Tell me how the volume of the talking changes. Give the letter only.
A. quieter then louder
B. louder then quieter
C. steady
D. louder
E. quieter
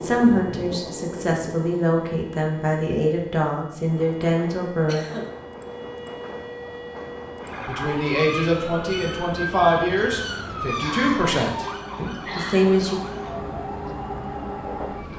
C.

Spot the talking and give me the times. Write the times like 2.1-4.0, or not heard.
0.0-5.0, 7.7-13.0.